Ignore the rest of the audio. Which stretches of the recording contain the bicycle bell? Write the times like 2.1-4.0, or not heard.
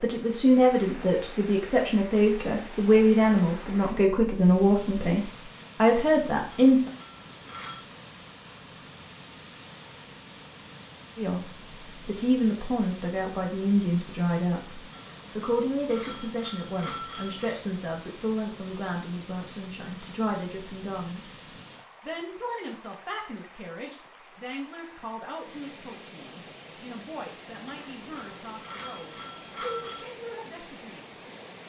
6.5-7.8, 14.9-17.6, 27.6-30.1.